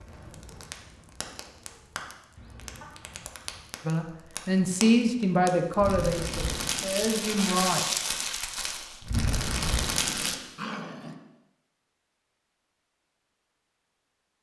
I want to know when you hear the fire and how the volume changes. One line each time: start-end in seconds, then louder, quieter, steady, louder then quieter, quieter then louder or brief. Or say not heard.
0.0-10.4 louder.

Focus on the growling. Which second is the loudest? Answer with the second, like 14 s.
11 s.